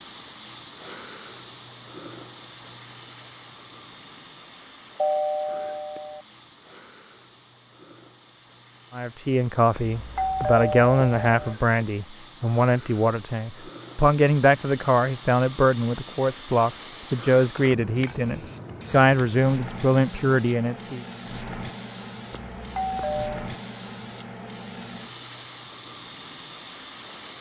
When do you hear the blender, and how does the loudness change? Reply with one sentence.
You can't hear the blender here.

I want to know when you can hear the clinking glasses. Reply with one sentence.
The clinking glasses can't be heard in this clip.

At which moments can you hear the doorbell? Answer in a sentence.
You can hear the doorbell from 5.0 to 6.2 s, from 9.7 to 11.6 s and from 22.6 to 23.4 s.